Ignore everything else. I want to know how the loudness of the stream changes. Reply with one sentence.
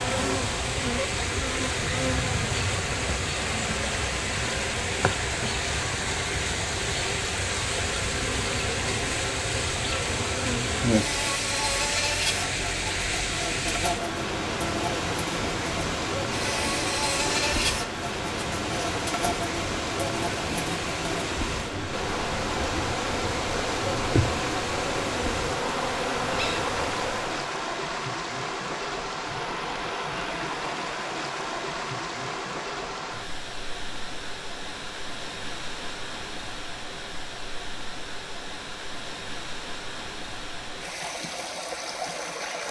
The volume of the stream goes down.